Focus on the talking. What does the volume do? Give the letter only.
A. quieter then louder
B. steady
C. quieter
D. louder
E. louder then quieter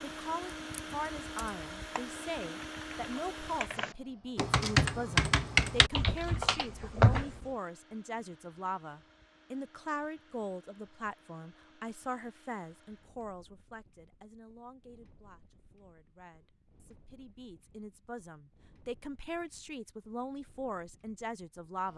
A.